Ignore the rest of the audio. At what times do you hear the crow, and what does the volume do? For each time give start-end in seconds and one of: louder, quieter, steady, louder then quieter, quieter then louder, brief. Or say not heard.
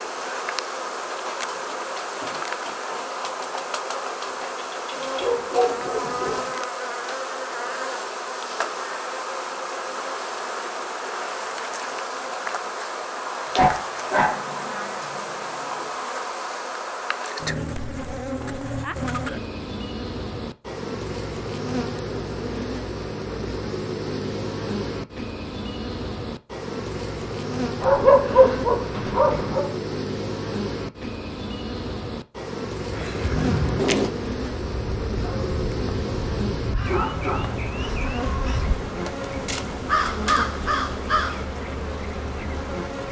32.9-41.5 quieter then louder.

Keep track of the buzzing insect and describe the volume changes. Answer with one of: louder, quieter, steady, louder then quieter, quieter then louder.
steady.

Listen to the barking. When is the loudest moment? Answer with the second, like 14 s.
28 s.